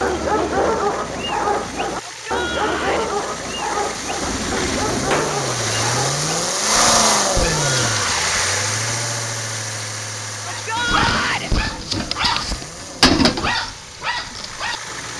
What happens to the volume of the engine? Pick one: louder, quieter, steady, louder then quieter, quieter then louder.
louder then quieter.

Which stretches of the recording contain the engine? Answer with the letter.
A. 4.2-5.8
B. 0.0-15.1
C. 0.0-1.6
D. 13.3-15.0
B.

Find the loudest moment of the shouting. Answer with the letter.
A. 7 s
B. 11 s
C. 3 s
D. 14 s
B.